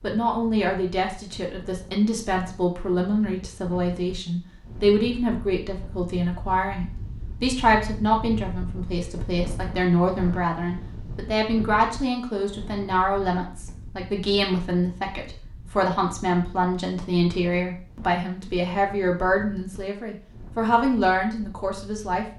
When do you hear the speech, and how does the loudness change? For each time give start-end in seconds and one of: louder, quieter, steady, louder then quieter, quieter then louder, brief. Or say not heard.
0.0-22.3 steady.